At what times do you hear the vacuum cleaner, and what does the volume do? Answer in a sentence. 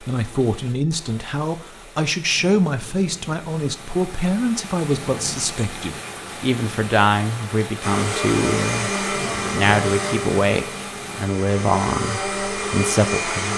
You can hear the vacuum cleaner from 7.8 to 13.5 s, getting quieter then louder.